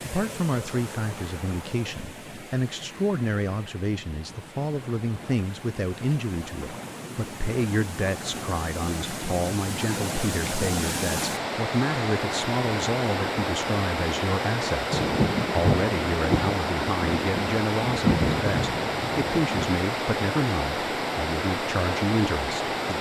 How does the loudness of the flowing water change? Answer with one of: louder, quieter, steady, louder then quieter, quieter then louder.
louder.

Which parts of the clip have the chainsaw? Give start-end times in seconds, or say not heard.
not heard.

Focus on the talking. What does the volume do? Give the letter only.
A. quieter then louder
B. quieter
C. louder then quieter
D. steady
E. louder
D.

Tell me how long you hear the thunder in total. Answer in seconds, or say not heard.
5 s.